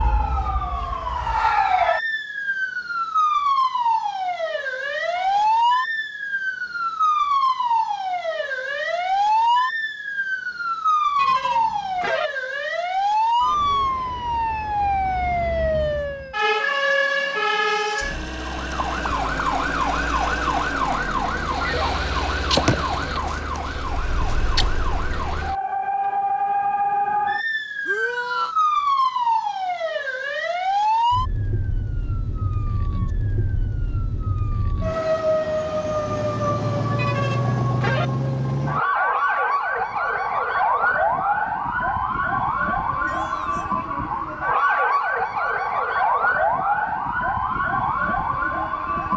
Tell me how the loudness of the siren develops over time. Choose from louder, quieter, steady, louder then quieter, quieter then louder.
steady.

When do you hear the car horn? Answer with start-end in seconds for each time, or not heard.
11.2-12.3, 37.0-38.1.